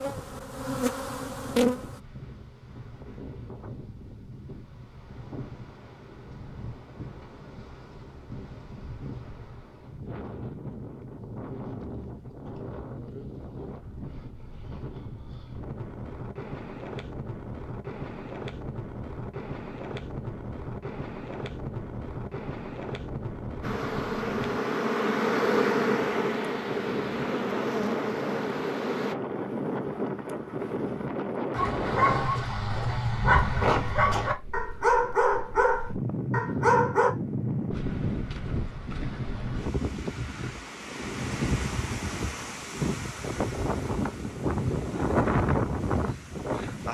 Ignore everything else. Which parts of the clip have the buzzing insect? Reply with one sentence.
You can hear the buzzing insect from 0.0 to 2.0 s and from 23.6 to 29.1 s.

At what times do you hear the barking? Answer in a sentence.
You can hear the barking from 31.6 to 37.1 s.